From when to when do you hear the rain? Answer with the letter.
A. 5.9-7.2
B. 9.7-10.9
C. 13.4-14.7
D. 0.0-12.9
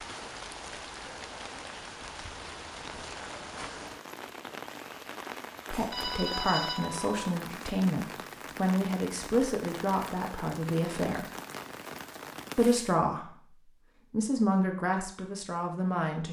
D.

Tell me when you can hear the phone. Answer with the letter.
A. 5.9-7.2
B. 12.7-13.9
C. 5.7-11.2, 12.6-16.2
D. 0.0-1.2
A.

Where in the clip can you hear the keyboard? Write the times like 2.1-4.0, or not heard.
not heard.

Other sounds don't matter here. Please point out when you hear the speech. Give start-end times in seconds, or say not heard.
5.7-11.2, 12.6-16.2.